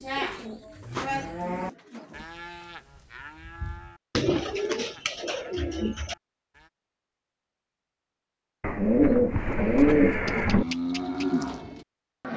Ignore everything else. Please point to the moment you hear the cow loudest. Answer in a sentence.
The volume of the cow peaks at 11 seconds.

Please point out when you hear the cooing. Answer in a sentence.
The cooing can be heard from 0.1 to 2.2 s, from 4.2 to 6.2 s and from 8.6 to 10.7 s.